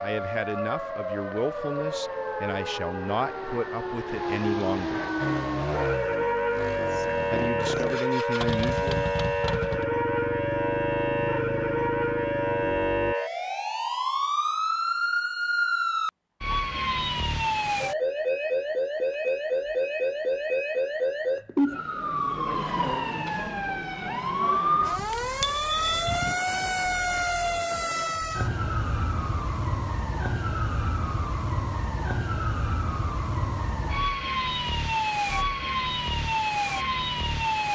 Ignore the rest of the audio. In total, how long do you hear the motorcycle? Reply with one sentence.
The motorcycle can be heard for 8 seconds in total.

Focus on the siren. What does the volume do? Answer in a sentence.
The loudness of the siren stays about the same.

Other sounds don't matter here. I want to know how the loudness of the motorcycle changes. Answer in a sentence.
The volume of the motorcycle stays about the same.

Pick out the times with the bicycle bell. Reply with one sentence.
The bicycle bell can be heard from 24.9 to 26.4 s.